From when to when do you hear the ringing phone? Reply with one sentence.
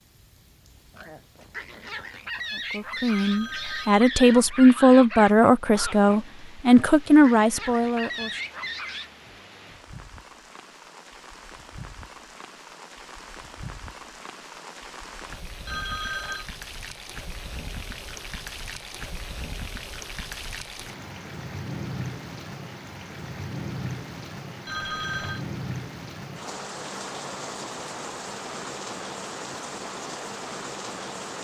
The ringing phone can be heard from 3.0 to 4.0 s, from 15.7 to 16.5 s and from 24.6 to 25.4 s.